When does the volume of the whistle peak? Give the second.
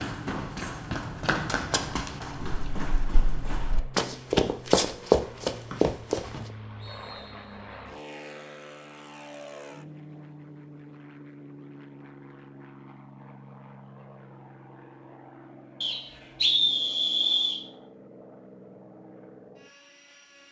17 s.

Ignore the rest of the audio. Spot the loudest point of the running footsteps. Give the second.
5 s.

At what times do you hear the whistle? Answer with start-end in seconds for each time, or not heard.
5.7-7.3, 15.8-17.6.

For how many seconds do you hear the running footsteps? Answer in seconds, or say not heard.
6 s.